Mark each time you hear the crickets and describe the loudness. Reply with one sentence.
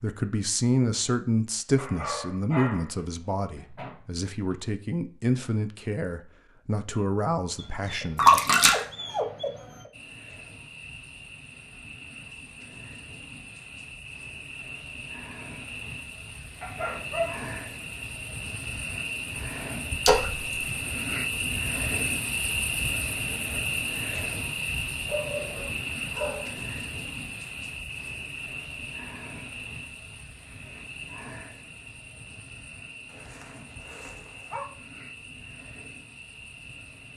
The crickets can be heard from 9.9 to 37.1 s, getting louder then quieter.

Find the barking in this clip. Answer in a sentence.
The barking can be heard from 1.8 to 4.5 s, from 7.5 to 9.9 s, from 16.6 to 17.4 s, from 25.1 to 26.6 s and from 33.0 to 34.6 s.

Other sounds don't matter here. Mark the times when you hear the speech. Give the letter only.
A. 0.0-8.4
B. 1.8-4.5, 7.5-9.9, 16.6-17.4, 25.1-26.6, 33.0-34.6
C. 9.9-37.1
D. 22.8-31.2
A.